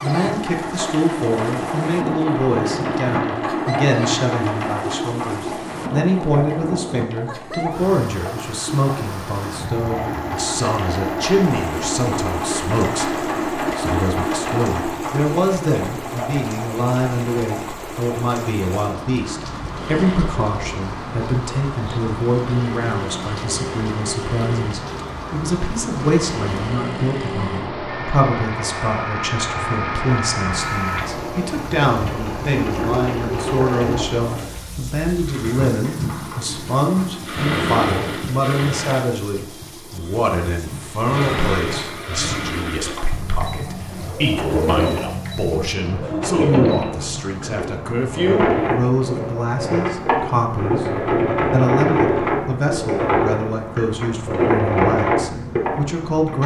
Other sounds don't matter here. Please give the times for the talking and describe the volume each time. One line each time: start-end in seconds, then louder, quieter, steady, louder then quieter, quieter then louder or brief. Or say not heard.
0.0-56.4 steady.